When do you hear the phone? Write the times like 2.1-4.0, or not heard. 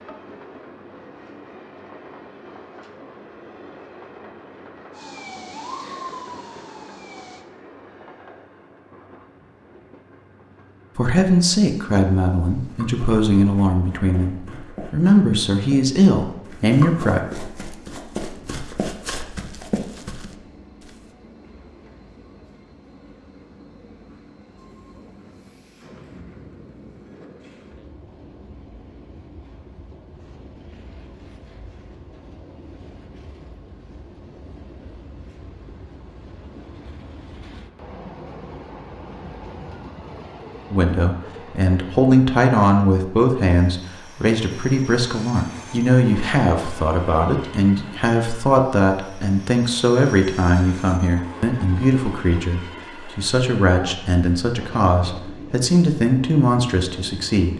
not heard.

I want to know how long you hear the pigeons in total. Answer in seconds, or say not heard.
not heard.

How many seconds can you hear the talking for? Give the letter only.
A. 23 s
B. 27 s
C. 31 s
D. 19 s
A.